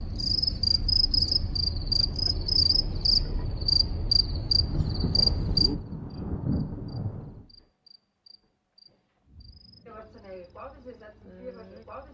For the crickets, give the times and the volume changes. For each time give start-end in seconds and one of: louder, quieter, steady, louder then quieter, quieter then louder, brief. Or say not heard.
0.0-12.0 quieter then louder.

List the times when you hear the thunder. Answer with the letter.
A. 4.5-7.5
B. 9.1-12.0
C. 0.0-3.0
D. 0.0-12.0
A.